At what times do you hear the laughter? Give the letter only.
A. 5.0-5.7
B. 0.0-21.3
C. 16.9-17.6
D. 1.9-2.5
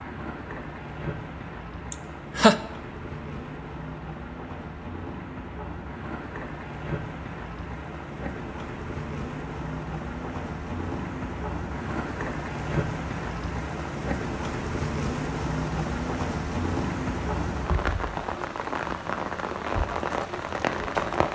D.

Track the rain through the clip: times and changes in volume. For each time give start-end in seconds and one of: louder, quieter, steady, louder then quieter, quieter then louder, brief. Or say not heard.
0.0-21.3 louder.